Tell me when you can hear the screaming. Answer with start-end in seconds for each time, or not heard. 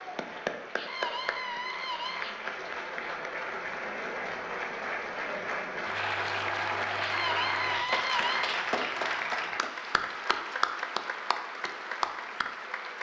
0.8-2.4, 7.0-8.6.